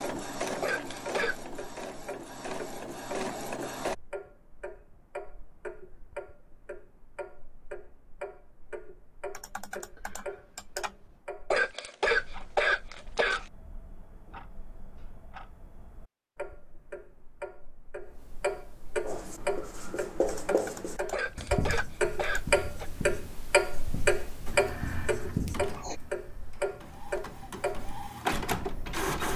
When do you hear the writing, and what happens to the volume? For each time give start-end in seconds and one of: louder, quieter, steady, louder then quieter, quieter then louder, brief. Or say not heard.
19.0-25.9 quieter then louder.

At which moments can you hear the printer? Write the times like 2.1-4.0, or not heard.
0.0-4.0, 24.4-29.3.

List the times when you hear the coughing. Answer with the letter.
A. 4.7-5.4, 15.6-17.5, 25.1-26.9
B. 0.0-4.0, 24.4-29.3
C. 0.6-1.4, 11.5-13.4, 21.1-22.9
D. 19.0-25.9
C.